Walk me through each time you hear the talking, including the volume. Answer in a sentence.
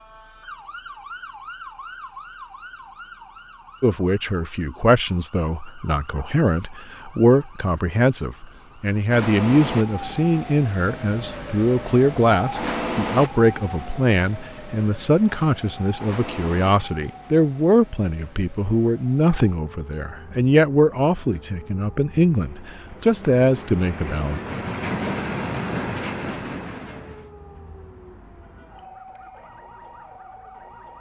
The talking can be heard from 3.8 to 24.4 s, at a steady volume.